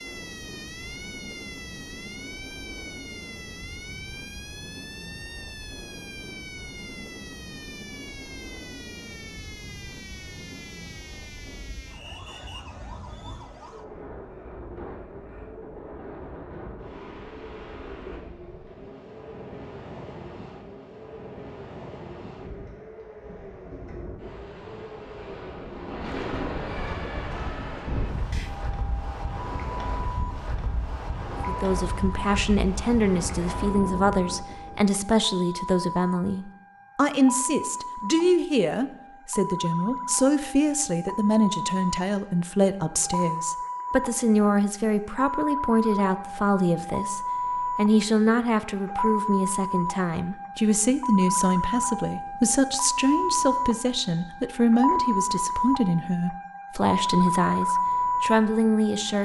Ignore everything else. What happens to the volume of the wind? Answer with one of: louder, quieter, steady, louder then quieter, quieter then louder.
louder.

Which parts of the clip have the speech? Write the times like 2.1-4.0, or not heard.
31.3-59.1.